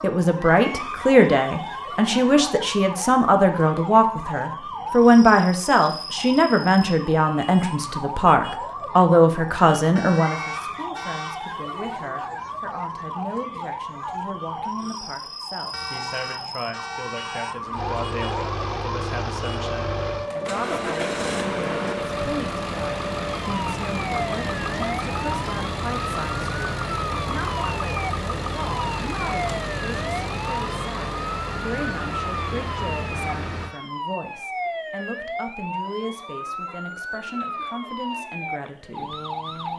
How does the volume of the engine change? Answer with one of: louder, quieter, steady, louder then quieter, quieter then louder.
steady.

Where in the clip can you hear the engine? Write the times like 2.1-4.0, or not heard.
17.7-33.8.